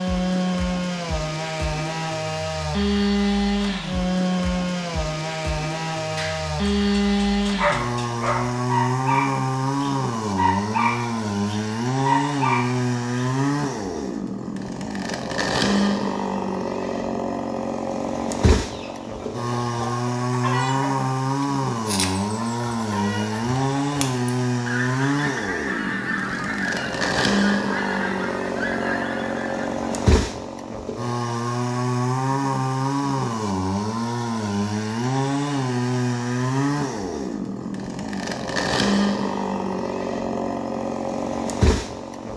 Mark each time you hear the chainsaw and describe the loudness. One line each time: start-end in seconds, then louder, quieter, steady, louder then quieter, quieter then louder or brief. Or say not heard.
0.0-42.3 steady.